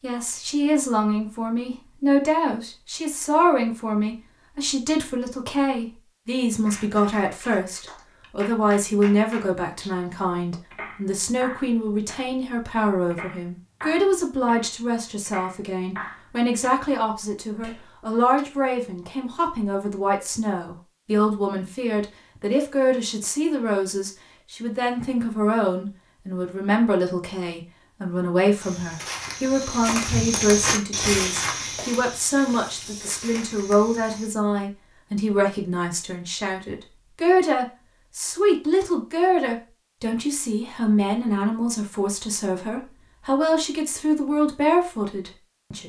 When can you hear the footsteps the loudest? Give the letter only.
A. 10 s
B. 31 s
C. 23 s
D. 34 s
B.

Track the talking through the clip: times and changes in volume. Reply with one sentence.
The talking can be heard from 0.0 to 45.8 s, at a steady volume.